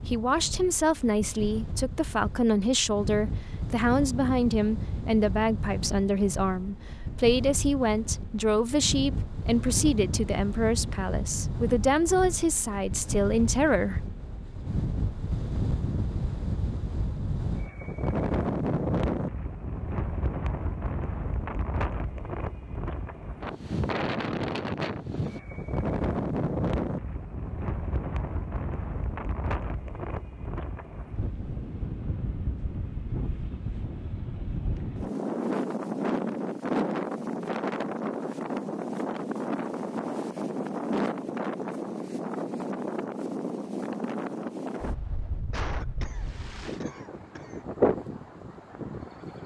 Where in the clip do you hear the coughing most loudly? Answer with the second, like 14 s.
46 s.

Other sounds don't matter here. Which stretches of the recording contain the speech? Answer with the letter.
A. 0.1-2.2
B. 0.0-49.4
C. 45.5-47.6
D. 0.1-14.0
D.